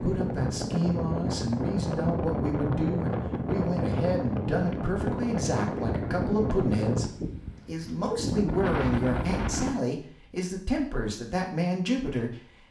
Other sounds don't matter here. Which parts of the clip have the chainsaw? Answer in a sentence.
You can't hear the chainsaw here.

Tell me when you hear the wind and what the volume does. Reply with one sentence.
The wind can be heard from 0.0 to 9.8 s, at a steady volume.